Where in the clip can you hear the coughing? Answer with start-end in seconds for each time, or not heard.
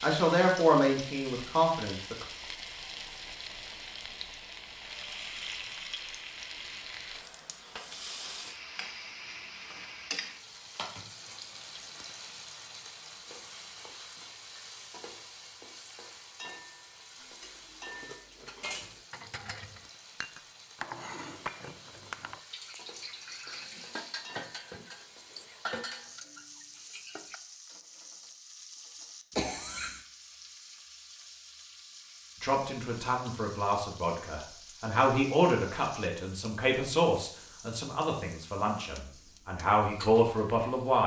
29.4-30.1.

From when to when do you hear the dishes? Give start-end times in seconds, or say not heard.
17.1-27.4.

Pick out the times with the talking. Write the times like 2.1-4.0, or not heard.
0.0-2.2, 32.4-41.0.